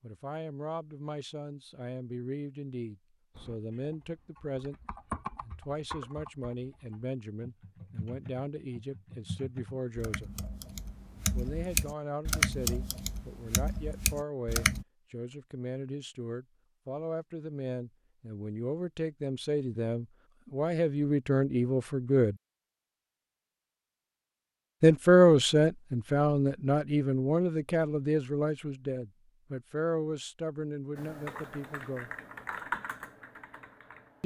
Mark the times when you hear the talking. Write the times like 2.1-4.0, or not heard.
0.0-10.3, 11.3-22.4, 24.8-32.1.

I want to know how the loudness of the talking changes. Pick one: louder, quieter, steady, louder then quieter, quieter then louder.
louder then quieter.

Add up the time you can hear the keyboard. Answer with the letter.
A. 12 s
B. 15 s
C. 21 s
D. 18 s
B.